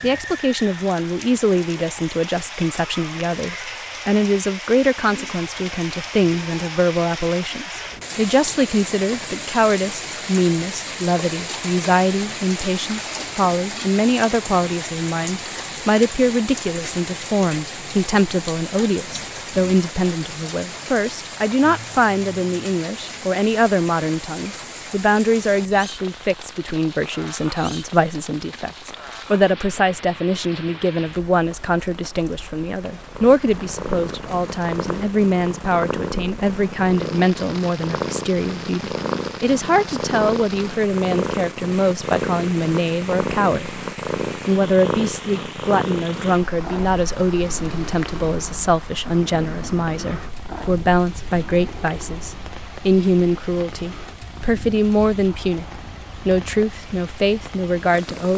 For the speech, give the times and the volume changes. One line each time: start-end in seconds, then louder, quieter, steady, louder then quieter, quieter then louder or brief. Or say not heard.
0.0-43.8 steady
44.5-55.6 steady
56.2-58.3 brief.